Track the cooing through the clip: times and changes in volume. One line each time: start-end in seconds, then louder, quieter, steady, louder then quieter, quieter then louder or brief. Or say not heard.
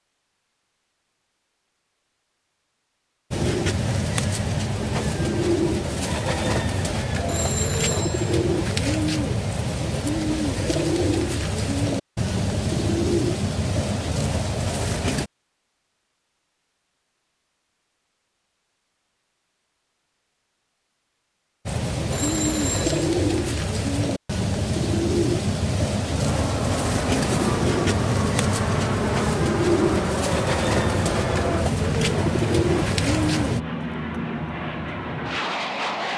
3.3-15.3 steady
21.6-33.6 steady.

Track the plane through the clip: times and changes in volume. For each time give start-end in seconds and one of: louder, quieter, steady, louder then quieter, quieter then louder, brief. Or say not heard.
26.1-36.1 steady.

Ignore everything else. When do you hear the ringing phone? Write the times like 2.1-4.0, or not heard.
7.2-8.2, 22.1-23.1.